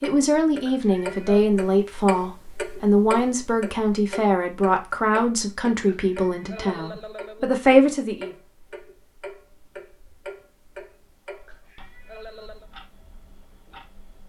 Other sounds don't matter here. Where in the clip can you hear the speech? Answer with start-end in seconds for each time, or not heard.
0.0-8.3.